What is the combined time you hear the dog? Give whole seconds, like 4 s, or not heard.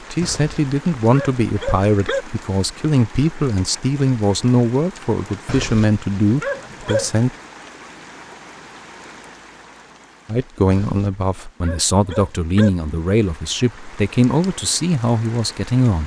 6 s.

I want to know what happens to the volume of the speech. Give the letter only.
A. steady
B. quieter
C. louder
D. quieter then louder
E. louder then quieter
A.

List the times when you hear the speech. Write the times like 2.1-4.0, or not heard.
0.1-7.3, 10.2-16.0.